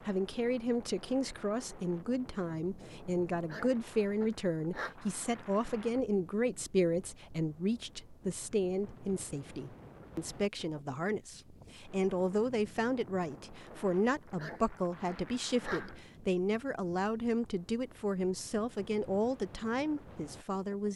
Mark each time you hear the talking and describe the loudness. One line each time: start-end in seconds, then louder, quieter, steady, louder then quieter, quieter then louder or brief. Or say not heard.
0.1-20.9 steady.